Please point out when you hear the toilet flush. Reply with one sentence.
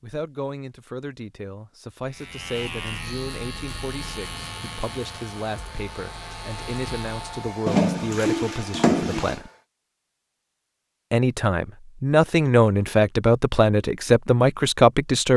You can hear the toilet flush from 7.7 to 9.4 s.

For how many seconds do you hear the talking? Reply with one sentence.
The talking can be heard for 14 seconds in total.